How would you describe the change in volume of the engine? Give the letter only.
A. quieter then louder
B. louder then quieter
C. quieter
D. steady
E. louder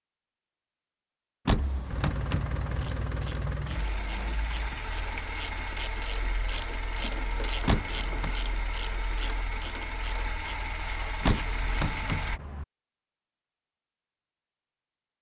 D.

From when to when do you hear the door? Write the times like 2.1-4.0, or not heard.
1.4-2.9, 7.7-8.3, 11.2-12.7.